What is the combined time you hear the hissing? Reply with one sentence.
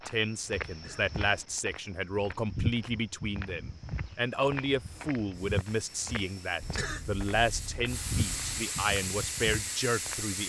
The hissing can be heard for 5 seconds in total.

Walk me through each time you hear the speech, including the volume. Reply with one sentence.
You can hear the speech from 0.1 to 10.4 s, at a steady volume.